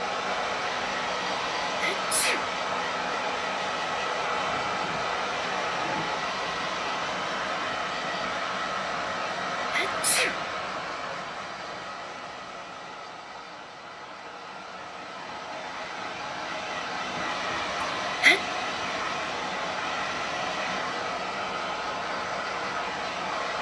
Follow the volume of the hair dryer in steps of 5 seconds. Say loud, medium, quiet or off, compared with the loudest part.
loud, loud, medium, loud, loud.